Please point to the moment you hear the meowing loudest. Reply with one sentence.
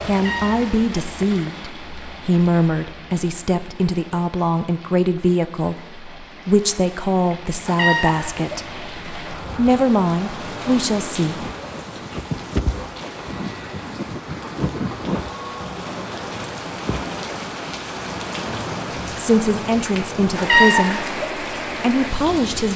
The volume of the meowing peaks at 21 seconds.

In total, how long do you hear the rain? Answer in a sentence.
The rain can be heard for 23 seconds in total.